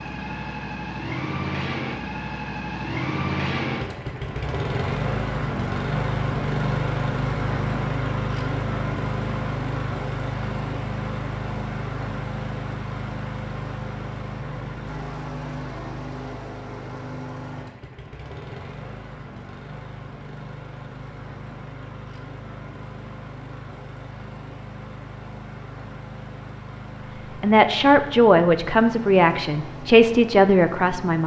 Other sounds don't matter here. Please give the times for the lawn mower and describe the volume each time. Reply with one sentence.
You can hear the lawn mower from 0.0 to 31.2 s, getting quieter.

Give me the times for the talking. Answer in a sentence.
You can hear the talking from 27.2 to 31.2 s.